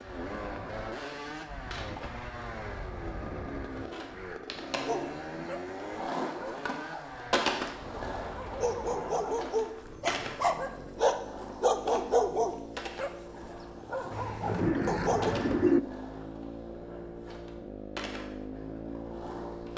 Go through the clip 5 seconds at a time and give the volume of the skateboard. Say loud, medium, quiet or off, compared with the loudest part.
medium, loud, medium, medium.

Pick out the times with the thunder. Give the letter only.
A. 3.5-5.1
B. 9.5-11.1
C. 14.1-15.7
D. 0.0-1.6
C.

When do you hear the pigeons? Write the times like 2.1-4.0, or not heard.
3.9-5.1, 14.6-15.8.